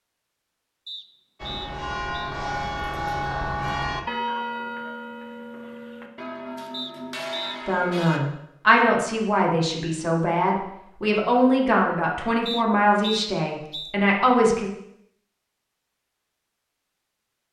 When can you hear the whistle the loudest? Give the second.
13 s.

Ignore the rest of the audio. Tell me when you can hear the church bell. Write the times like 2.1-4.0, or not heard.
1.4-8.2.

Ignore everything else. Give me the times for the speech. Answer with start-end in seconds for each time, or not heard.
7.7-14.7.